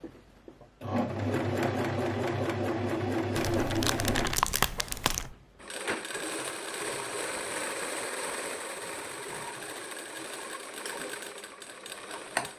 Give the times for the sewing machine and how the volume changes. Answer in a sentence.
You can hear the sewing machine from 0.0 to 12.5 s, getting quieter.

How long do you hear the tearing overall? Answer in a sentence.
You can hear the tearing for 2 seconds altogether.